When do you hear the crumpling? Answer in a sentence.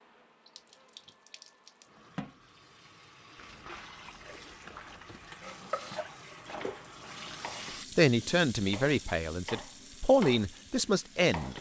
You can hear the crumpling from 3.4 to 5.5 s.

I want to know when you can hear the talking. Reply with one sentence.
The talking can be heard from 8.0 to 11.5 s.